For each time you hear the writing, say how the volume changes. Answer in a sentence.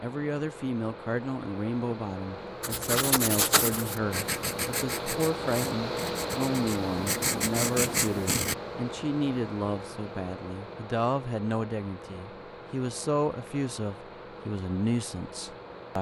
You can hear the writing from 2.6 to 8.6 s, getting quieter then louder.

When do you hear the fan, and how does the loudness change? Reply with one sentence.
You can hear the fan from 0.0 to 15.9 s, getting louder then quieter.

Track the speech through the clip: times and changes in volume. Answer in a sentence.
The speech can be heard from 0.0 to 15.9 s, at a steady volume.